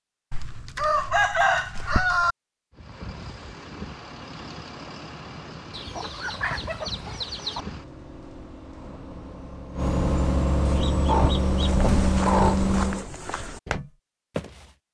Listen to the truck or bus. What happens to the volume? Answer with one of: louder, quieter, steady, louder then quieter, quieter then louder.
louder.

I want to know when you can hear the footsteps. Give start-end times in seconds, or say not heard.
11.6-14.7.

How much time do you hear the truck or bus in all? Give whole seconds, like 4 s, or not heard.
10 s.